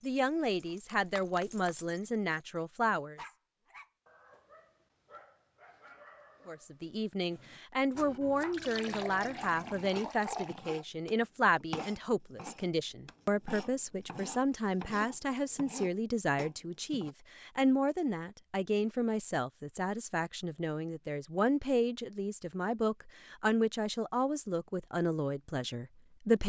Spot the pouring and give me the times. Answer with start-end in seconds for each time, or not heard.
8.5-10.7.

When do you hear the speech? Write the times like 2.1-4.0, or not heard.
0.0-3.2, 6.5-26.4.